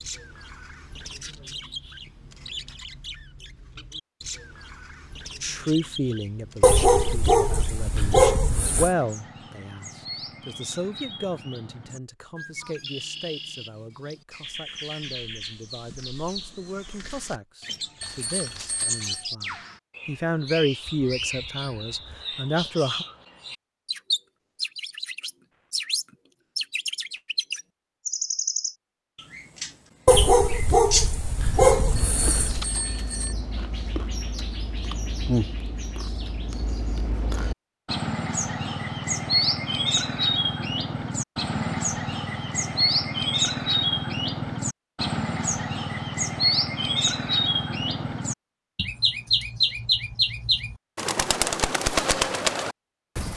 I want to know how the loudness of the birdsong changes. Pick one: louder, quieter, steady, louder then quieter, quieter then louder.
louder.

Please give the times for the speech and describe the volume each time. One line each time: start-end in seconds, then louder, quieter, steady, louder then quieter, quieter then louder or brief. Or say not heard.
5.4-23.1 quieter then louder.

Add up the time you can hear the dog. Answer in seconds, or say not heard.
5 s.